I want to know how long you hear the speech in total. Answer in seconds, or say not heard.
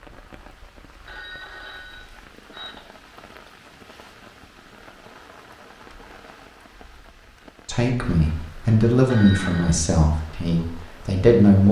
4 s.